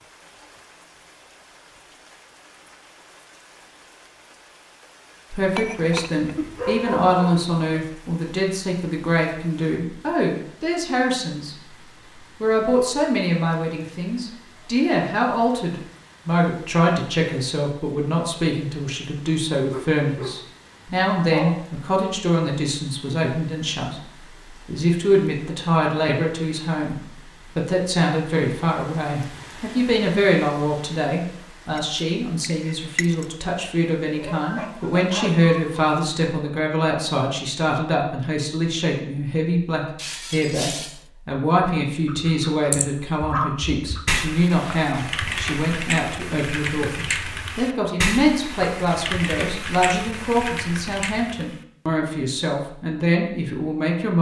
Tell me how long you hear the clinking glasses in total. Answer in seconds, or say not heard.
4 s.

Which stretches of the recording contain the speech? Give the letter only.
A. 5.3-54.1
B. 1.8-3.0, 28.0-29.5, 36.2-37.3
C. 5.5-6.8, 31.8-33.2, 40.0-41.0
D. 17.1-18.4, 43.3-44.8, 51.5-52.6
A.